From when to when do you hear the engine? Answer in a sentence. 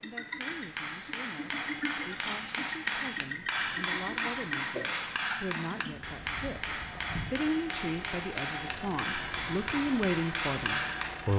You can hear the engine from 0.0 to 11.3 s.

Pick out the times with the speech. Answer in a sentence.
You can hear the speech from 0.0 to 11.3 s.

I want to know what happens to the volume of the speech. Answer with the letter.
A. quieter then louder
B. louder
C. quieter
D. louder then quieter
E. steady
B.